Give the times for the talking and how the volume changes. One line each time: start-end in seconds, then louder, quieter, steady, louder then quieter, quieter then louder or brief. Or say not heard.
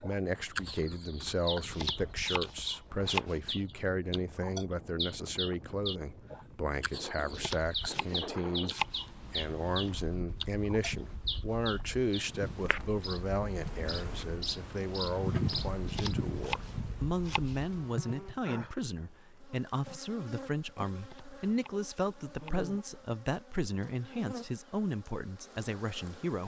0.0-26.4 steady.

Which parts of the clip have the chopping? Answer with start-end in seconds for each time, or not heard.
1.6-3.4, 7.3-9.2, 15.8-17.6, 20.9-22.7.